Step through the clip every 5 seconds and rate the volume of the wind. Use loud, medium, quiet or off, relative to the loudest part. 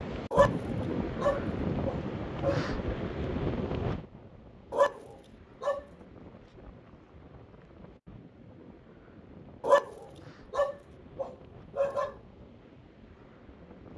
loud, quiet, quiet.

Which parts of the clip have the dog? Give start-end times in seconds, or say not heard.
0.3-2.7, 4.7-5.8, 9.6-12.2.